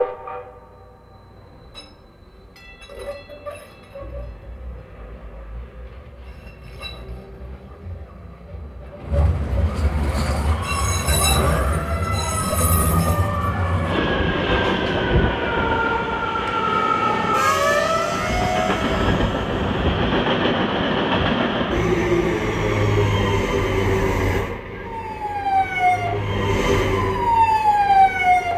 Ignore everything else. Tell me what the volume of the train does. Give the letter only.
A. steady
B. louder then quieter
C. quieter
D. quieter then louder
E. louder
E.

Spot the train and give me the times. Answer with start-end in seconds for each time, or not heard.
0.0-28.5.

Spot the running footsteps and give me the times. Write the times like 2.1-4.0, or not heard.
not heard.